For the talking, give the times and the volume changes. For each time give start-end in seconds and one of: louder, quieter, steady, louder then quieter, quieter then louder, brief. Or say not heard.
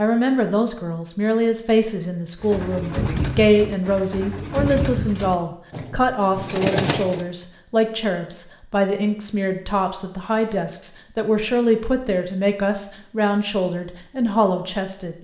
0.0-15.1 steady.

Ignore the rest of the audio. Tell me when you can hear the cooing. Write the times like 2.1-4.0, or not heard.
2.4-7.2.